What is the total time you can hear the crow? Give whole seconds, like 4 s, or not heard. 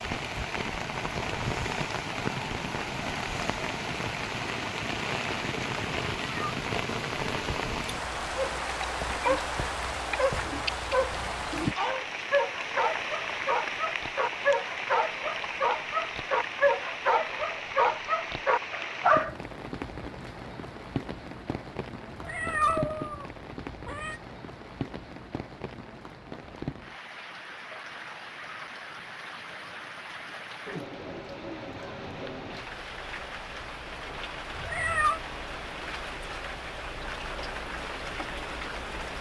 not heard.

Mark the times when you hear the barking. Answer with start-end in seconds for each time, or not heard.
8.3-19.4.